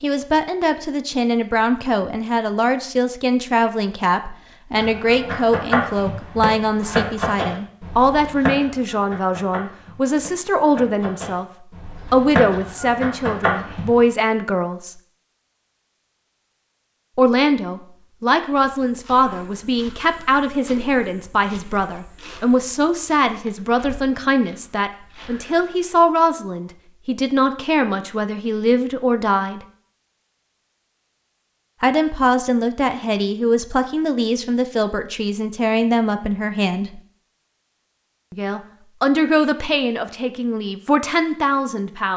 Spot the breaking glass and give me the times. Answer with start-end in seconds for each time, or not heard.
not heard.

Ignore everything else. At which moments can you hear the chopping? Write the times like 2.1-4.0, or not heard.
4.8-14.0.